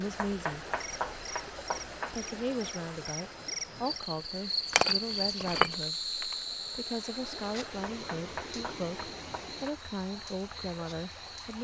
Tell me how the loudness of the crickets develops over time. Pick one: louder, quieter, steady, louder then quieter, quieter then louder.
louder then quieter.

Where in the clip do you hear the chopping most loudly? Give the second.
1 s.